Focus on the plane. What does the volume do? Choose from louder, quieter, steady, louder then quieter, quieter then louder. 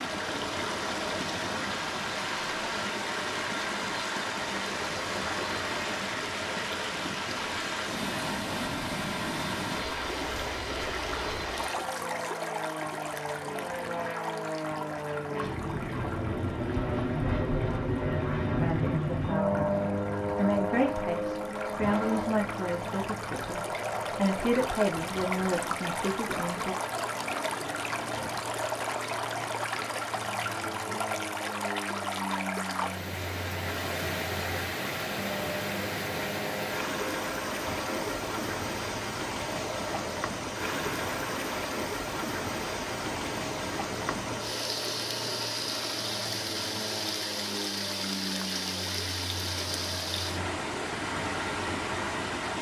louder then quieter.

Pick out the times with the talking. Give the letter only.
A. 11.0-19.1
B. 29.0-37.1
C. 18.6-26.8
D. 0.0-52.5
C.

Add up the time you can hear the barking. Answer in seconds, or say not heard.
not heard.